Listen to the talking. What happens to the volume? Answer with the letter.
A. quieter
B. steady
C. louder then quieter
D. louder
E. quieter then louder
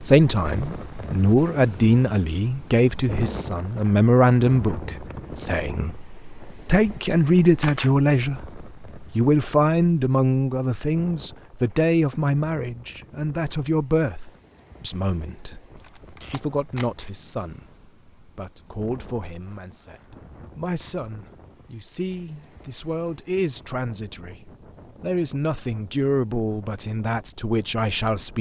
E.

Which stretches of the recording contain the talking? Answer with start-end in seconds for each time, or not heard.
0.0-28.3.